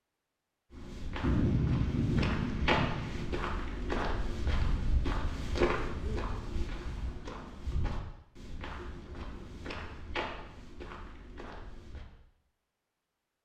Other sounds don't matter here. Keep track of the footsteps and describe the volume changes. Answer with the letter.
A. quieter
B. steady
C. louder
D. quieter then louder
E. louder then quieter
A.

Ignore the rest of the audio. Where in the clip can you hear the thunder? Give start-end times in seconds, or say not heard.
1.2-3.2.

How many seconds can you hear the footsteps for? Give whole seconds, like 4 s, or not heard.
11 s.